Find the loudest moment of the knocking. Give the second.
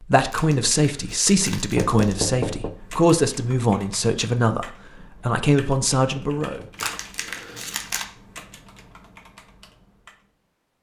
2 s.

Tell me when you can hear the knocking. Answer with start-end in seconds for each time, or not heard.
1.8-2.8, 6.2-7.0.